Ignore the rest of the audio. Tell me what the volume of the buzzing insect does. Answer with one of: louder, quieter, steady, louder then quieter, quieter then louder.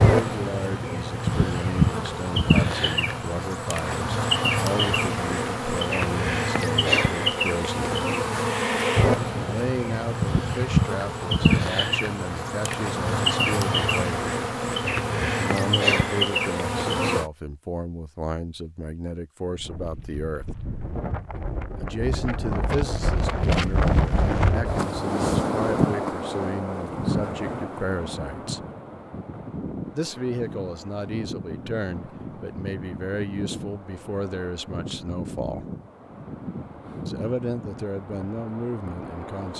steady.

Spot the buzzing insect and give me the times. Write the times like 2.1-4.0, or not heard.
0.0-17.3.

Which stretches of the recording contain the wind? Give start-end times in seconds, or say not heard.
19.4-39.5.